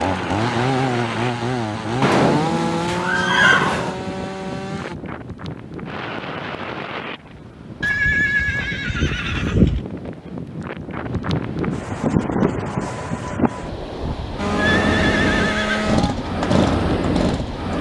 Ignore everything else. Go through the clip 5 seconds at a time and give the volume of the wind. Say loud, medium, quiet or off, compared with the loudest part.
medium, medium, loud, loud.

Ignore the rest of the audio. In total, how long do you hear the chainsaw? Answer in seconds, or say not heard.
8 s.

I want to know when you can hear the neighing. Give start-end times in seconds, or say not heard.
2.0-4.0, 7.8-9.8, 14.6-16.1.